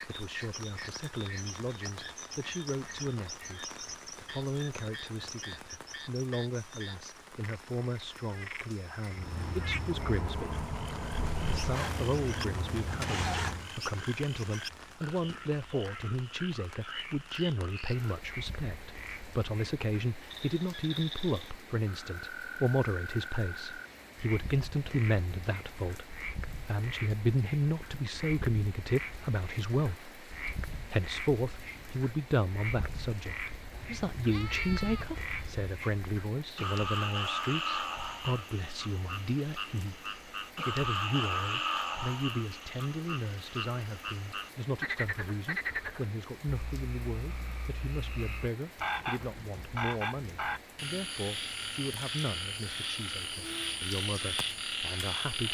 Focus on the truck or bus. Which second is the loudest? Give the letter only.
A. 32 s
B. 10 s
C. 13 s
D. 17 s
C.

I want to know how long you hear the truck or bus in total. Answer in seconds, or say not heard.
5 s.